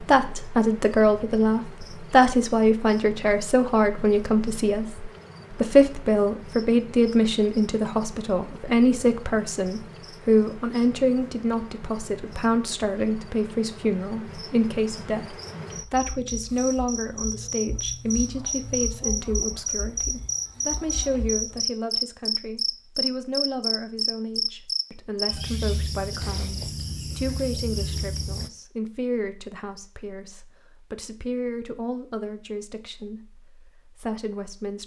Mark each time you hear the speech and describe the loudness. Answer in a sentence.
The speech can be heard from 0.0 to 34.8 s, getting quieter.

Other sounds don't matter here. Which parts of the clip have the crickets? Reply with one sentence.
The crickets can be heard from 0.0 to 28.5 s.